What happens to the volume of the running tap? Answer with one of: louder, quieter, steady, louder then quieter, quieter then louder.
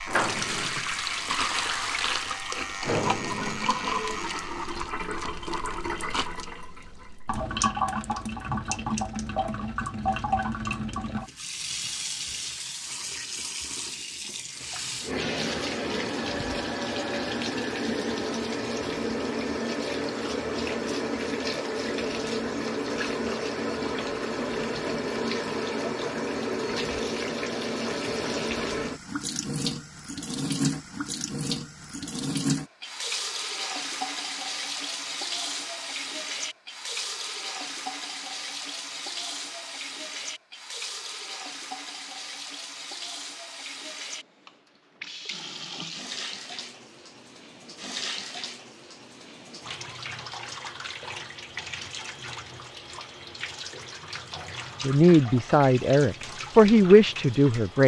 quieter.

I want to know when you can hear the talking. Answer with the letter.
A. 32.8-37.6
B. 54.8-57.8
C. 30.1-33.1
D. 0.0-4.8
B.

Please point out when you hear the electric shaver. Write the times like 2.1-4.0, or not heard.
0.0-4.8.